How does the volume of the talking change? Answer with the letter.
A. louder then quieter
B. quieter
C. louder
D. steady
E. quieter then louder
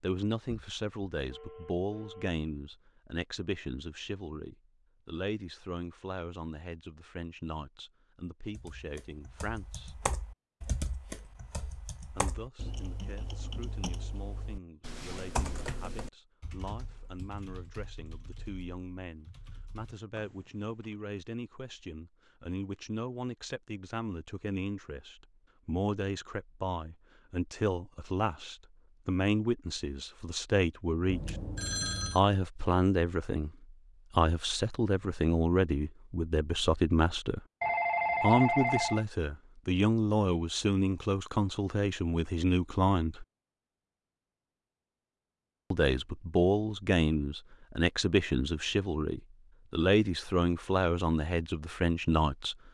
E.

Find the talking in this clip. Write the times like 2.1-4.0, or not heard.
0.0-9.9, 12.2-31.4, 32.1-37.4, 38.2-43.2, 45.7-52.5.